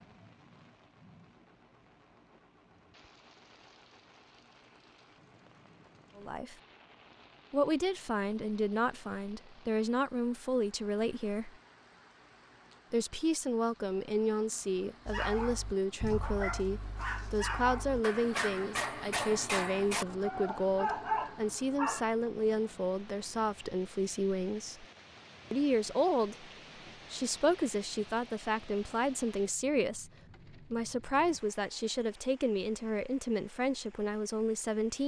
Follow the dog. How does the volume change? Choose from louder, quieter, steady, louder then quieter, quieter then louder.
louder.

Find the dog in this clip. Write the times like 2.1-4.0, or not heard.
15.1-22.1.